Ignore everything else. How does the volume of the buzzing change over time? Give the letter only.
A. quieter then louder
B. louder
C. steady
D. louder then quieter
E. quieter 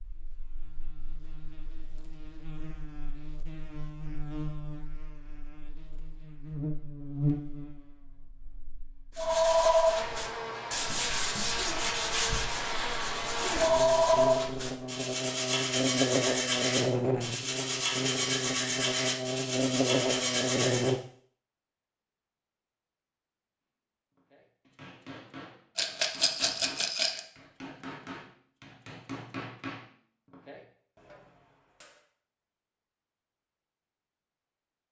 B.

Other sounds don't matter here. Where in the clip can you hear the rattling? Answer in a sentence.
The rattling can be heard from 25.8 to 27.2 s.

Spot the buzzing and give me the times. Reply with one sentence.
The buzzing can be heard from 0.0 to 21.0 s.